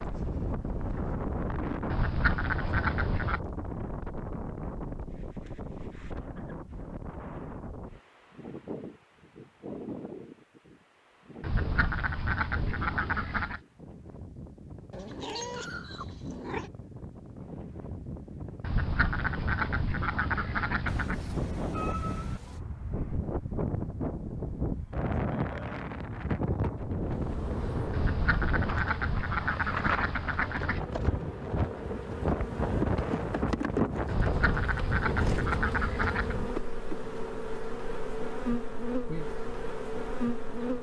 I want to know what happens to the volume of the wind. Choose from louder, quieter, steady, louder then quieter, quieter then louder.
quieter then louder.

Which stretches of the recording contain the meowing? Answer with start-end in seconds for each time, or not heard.
14.9-16.7, 20.9-22.6.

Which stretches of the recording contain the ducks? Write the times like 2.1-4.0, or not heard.
1.9-3.4, 11.4-13.6, 18.6-21.2, 27.9-30.8, 34.0-36.4.